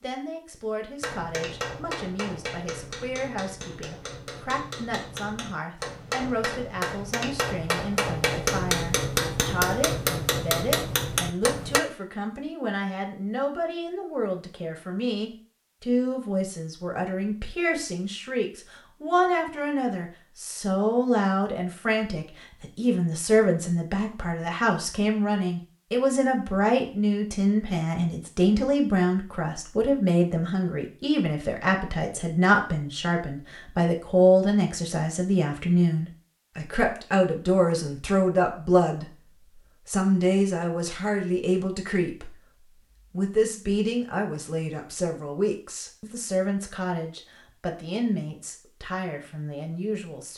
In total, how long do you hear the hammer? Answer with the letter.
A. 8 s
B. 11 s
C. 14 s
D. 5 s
B.